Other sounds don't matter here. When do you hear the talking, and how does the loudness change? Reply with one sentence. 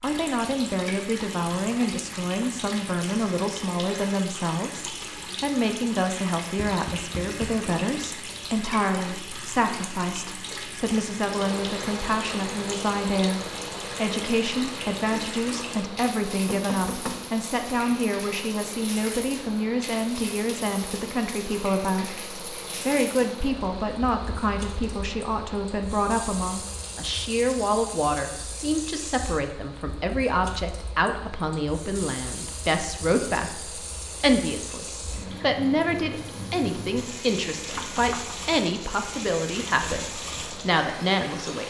The talking can be heard from 0.0 to 41.6 s, at a steady volume.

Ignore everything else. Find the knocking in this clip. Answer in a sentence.
The knocking can be heard from 6.5 to 7.7 s, from 16.4 to 17.2 s and from 37.8 to 38.4 s.